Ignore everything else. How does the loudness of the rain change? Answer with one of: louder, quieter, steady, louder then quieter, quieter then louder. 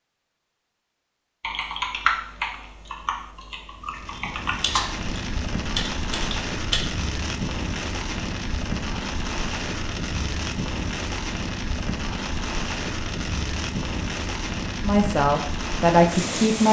steady.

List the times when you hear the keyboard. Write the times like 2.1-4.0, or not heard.
1.4-6.9.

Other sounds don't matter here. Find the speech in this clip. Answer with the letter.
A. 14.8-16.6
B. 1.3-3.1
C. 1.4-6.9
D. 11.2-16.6
A.